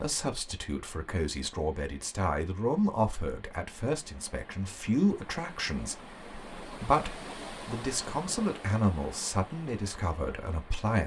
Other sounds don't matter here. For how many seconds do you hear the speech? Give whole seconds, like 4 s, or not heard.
11 s.